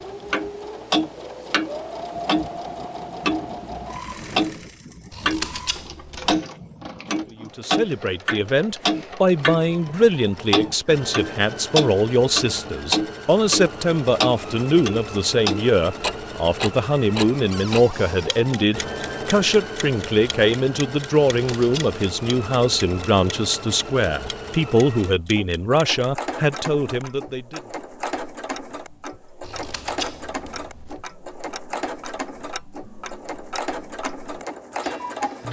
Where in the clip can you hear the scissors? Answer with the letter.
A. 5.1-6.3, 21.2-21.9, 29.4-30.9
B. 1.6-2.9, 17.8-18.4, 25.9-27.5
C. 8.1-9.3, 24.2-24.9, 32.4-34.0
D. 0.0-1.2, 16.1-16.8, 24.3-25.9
A.